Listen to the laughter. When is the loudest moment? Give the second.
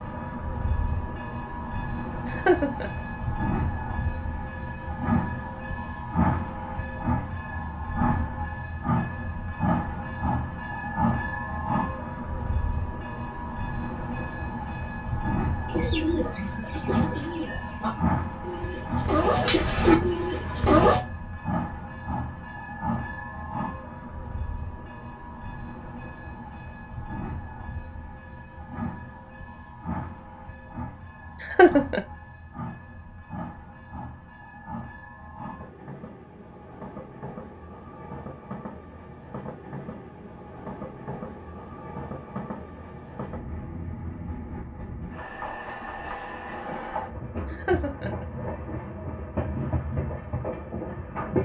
32 s.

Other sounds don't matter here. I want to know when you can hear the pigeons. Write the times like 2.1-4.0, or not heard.
15.7-21.0.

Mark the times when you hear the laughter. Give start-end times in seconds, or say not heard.
2.3-2.9, 31.4-32.0, 47.5-48.2.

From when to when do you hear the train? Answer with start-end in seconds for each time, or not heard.
0.0-51.3.